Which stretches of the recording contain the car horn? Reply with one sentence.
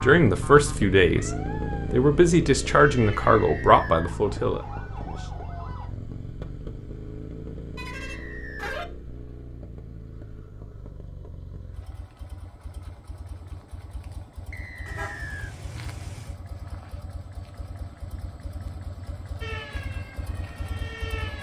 The car horn can be heard from 7.8 to 8.8 s and from 14.8 to 16.4 s.